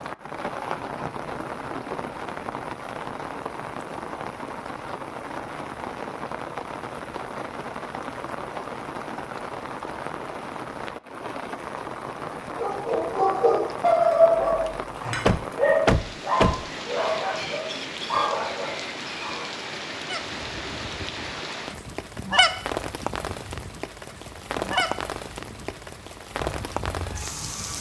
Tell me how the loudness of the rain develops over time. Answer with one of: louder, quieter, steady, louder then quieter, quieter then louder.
steady.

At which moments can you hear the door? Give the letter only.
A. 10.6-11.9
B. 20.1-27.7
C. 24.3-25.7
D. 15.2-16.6
D.